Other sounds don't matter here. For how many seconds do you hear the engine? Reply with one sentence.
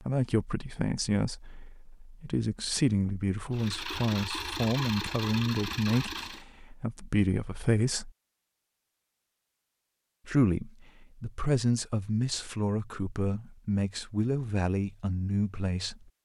You can hear the engine for 3 seconds altogether.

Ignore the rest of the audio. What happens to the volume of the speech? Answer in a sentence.
The loudness of the speech stays about the same.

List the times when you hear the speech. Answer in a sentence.
The speech can be heard from 0.0 to 8.1 s and from 10.2 to 16.1 s.